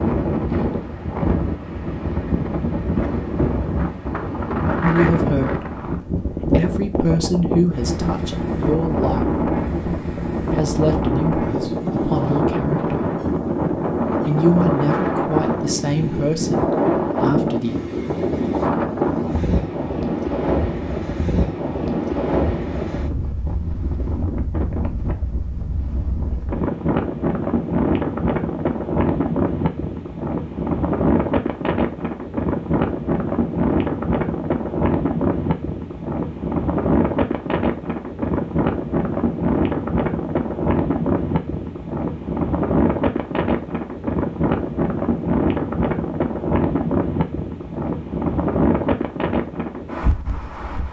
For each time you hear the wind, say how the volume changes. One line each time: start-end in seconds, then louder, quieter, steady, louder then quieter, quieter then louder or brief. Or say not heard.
0.0-50.8 steady.